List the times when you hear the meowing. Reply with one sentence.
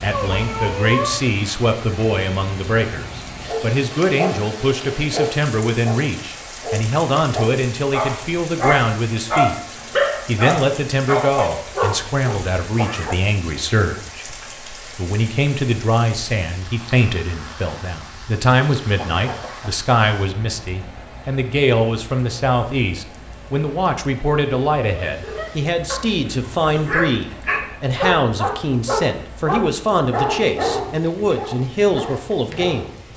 The meowing can be heard from 0.1 to 1.3 s.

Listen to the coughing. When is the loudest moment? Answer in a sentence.
The volume of the coughing peaks at 13 seconds.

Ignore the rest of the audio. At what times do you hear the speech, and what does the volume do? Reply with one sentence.
The speech can be heard from 0.0 to 9.6 s, at a steady volume; and from 10.2 to 32.9 s, at a steady volume.